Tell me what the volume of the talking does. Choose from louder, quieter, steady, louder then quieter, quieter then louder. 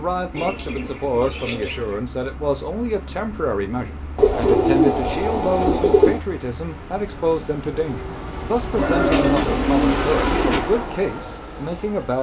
steady.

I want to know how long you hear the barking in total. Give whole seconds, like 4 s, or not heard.
not heard.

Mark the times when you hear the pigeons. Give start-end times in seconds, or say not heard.
0.3-1.9, 4.2-6.2, 8.8-10.6.